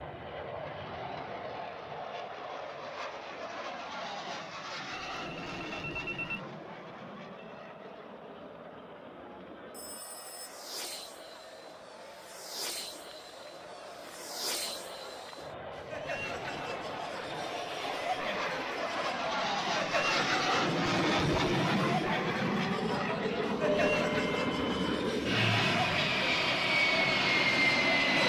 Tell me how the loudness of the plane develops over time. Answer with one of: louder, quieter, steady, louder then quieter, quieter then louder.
quieter then louder.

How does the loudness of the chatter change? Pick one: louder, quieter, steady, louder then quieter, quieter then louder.
louder.